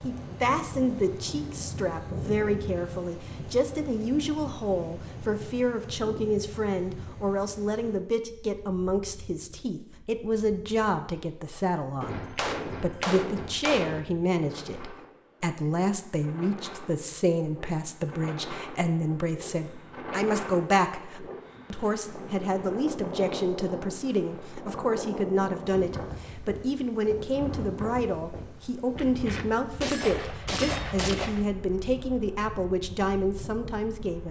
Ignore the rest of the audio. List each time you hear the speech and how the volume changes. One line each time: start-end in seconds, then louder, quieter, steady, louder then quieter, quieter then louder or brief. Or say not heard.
0.0-34.2 steady.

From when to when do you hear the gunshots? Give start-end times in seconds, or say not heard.
12.0-14.0, 28.9-31.4.